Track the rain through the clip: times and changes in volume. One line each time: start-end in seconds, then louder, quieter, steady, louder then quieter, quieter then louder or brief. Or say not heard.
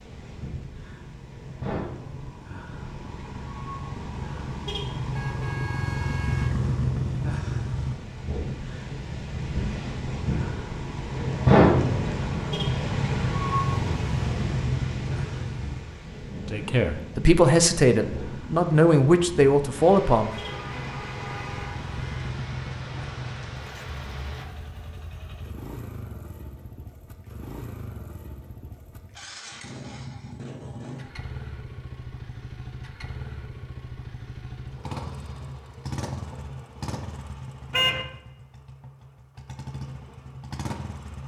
0.0-24.4 louder then quieter.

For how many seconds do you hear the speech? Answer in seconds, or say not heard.
4 s.